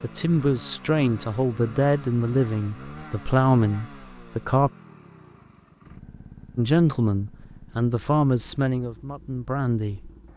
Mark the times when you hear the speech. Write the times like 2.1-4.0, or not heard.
0.0-4.7, 6.5-10.1.